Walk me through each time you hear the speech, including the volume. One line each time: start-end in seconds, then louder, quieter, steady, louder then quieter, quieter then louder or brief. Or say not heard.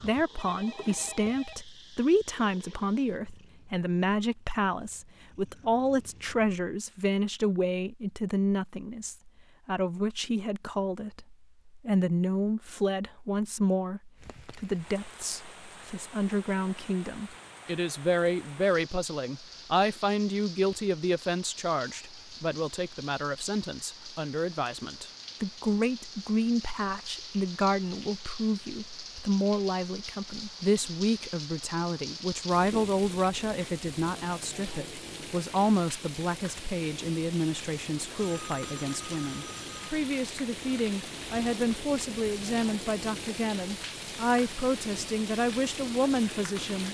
0.0-46.8 steady.